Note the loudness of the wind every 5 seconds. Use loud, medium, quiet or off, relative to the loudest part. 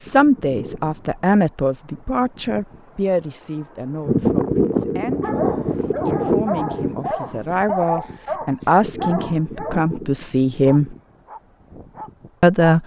loud, loud, quiet.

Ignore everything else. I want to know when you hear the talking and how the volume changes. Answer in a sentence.
You can hear the talking from 0.0 to 10.9 s, getting quieter then louder; and briefly from 12.4 to 12.8 s.